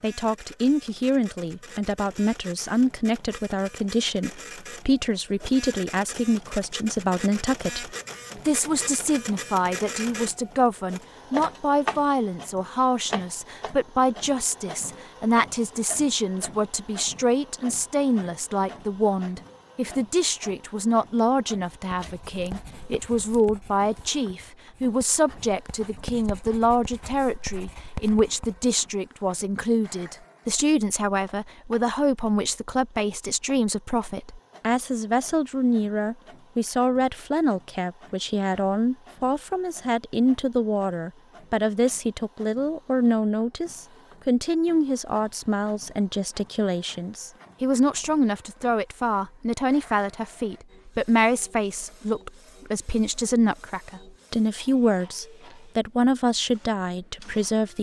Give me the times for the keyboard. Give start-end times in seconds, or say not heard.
not heard.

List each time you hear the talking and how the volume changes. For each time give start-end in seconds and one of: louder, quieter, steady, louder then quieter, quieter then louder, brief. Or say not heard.
0.0-57.7 steady.